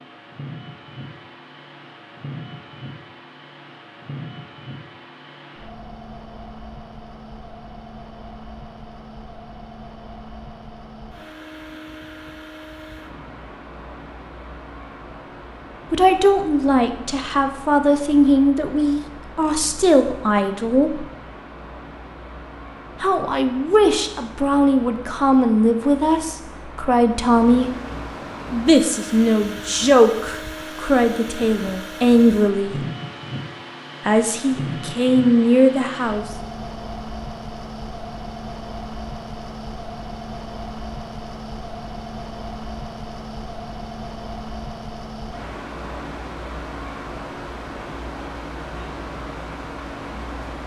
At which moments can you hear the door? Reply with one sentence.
You can't hear the door here.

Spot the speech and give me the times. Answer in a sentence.
You can hear the speech from 15.9 to 21.1 s, from 23.0 to 27.7 s, from 28.5 to 32.9 s and from 34.0 to 36.2 s.